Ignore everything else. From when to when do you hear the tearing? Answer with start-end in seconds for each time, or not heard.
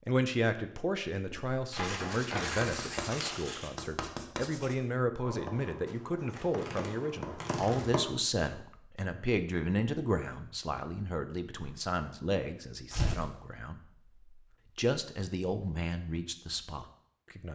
1.7-3.7, 5.8-7.9, 12.8-13.2.